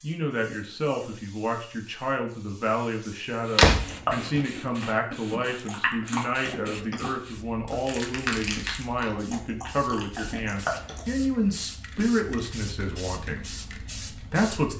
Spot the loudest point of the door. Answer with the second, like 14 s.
4 s.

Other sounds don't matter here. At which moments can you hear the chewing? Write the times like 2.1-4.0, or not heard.
3.9-11.2.